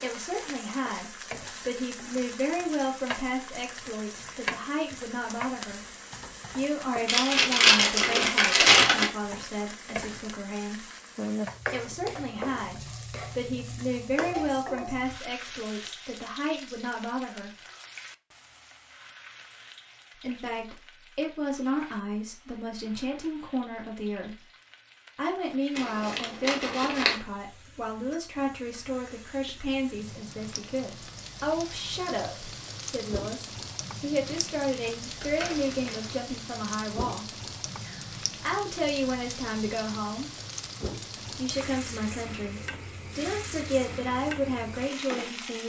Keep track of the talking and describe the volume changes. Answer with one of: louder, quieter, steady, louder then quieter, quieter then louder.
steady.